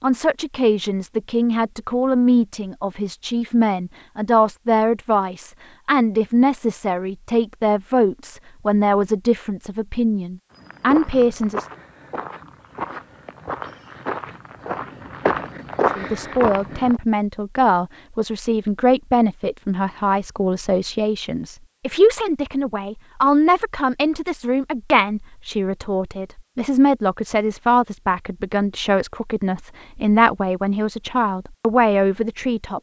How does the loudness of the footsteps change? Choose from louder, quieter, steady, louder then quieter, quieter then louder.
louder.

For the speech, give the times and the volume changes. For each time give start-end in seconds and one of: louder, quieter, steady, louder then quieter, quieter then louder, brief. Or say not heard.
0.0-11.7 steady
15.8-32.7 steady.